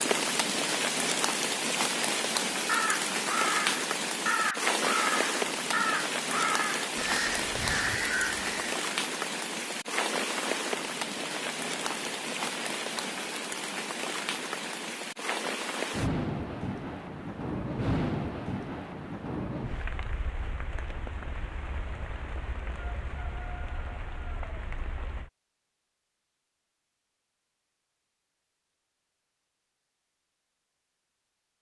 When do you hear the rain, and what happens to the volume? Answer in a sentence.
You can hear the rain from 0.0 to 25.3 s, getting quieter.